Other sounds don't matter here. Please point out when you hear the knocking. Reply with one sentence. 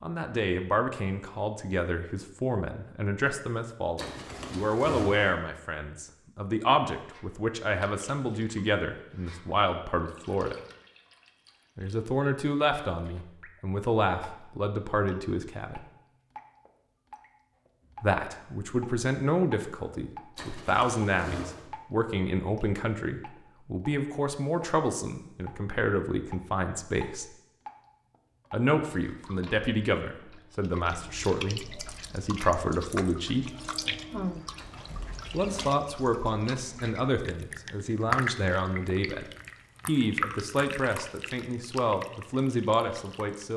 The knocking can't be heard in this clip.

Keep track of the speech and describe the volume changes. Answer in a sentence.
The loudness of the speech stays about the same.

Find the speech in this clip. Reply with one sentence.
The speech can be heard from 0.0 to 10.6 s, from 11.8 to 15.8 s, from 18.0 to 27.2 s, from 28.5 to 33.5 s, from 35.3 to 39.2 s and from 39.9 to 43.5 s.